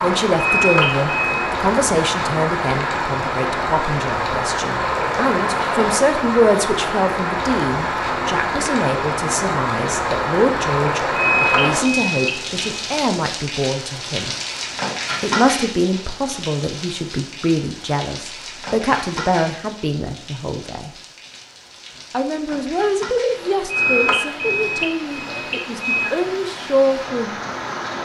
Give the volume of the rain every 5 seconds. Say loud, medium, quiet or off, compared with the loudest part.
loud, loud, loud, medium, quiet, medium.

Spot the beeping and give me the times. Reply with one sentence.
The beeping can be heard from 0.3 to 1.5 s, from 11.2 to 12.8 s and from 23.7 to 26.1 s.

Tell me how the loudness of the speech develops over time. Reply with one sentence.
The volume of the speech stays about the same.